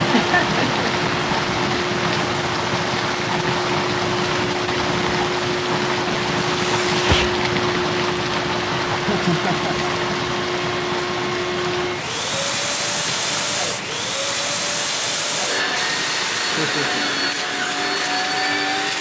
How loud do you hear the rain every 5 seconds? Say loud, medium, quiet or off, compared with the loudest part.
loud, loud, medium, quiet.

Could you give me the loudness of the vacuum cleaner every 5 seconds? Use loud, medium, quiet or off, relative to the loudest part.
medium, loud, loud, loud.